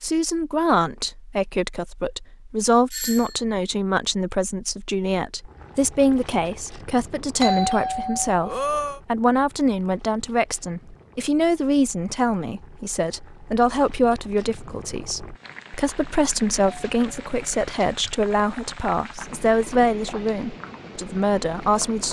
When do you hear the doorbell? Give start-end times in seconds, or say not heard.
2.9-3.4, 7.4-9.0, 15.9-17.9.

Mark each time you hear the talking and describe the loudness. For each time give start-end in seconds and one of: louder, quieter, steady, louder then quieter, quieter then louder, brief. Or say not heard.
0.0-22.0 steady.